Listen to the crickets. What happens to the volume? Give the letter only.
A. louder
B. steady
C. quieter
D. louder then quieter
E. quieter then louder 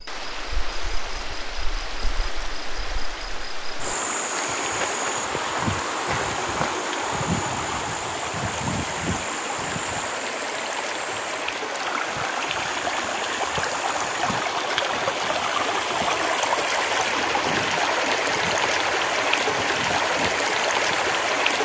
D.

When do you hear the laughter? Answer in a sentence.
The laughter can't be heard in this clip.